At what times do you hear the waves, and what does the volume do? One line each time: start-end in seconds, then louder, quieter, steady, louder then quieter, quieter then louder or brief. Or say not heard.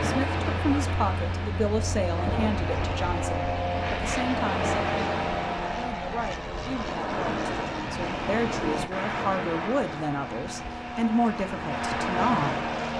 0.0-12.9 steady.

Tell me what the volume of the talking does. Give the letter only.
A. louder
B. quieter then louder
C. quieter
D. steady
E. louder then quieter
B.